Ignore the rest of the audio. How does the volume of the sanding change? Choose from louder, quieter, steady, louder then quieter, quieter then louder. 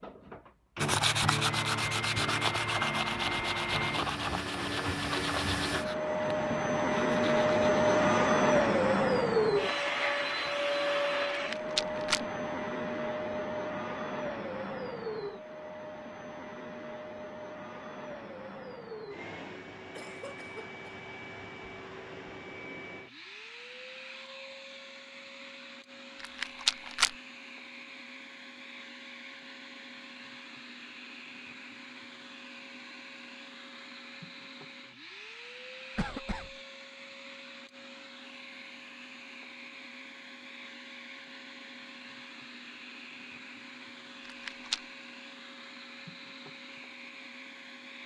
quieter.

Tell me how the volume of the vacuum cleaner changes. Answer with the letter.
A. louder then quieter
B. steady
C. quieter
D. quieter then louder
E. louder
C.